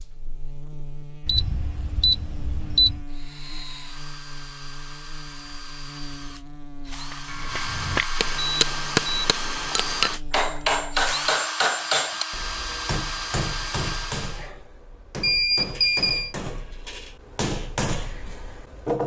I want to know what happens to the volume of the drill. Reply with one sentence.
The volume of the drill goes up.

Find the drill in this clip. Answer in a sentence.
The drill can be heard from 3.0 to 14.5 s.